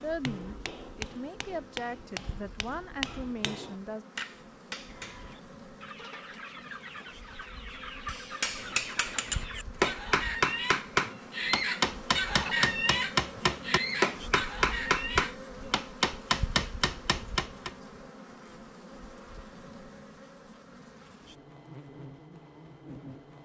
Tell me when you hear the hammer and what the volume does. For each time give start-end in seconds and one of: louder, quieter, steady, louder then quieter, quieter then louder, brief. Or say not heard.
0.0-5.3 steady
8.1-17.7 steady.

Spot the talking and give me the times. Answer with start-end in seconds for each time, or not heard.
0.0-4.0.